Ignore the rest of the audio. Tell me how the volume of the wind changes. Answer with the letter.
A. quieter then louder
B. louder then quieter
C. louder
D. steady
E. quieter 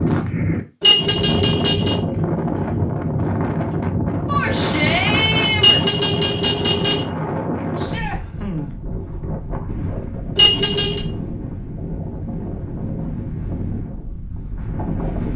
E.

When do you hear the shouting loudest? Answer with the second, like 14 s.
5 s.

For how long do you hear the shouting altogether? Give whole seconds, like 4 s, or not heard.
2 s.